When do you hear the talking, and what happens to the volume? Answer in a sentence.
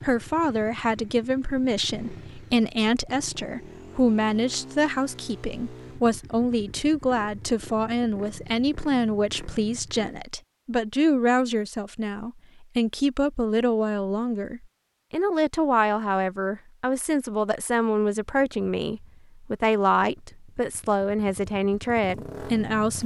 The talking can be heard from 0.0 to 23.0 s, at a steady volume.